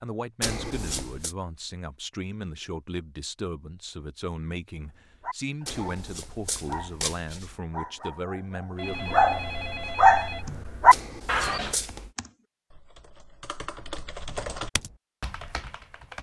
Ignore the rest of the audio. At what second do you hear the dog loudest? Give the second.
10 s.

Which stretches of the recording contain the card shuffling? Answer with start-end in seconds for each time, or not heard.
0.4-1.4, 5.7-7.5, 10.9-12.1.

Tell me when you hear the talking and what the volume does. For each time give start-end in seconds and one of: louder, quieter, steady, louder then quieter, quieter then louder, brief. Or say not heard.
0.0-9.2 steady.